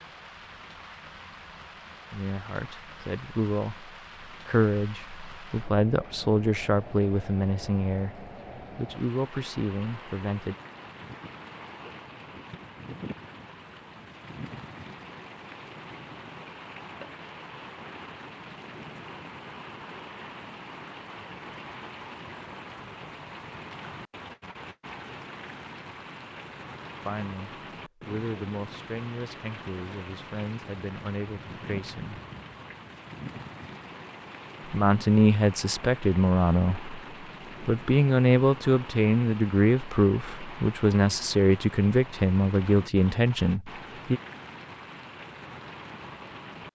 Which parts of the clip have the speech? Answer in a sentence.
You can hear the speech from 2.1 to 10.6 s, from 27.0 to 32.2 s, from 34.6 to 37.0 s and from 37.6 to 44.2 s.